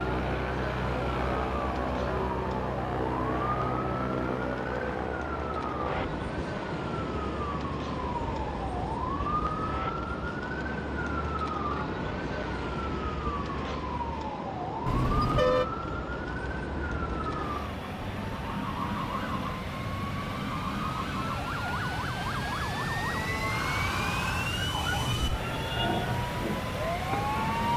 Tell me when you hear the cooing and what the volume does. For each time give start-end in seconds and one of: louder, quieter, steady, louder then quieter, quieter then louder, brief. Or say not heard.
not heard.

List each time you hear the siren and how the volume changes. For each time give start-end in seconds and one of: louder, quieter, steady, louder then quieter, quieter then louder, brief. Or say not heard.
0.0-27.7 steady.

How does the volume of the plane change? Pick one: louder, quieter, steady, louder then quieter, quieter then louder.
quieter then louder.